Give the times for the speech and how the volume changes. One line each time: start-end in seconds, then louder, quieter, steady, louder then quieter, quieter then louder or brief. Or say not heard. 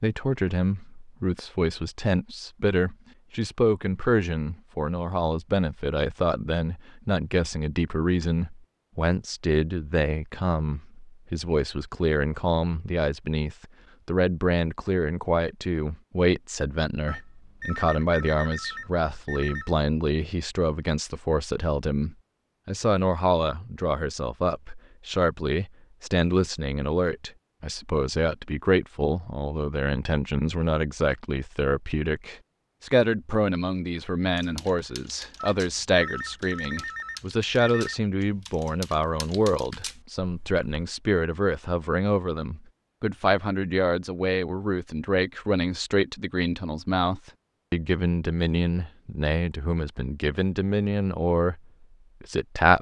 0.0-51.6 steady
52.2-52.7 brief.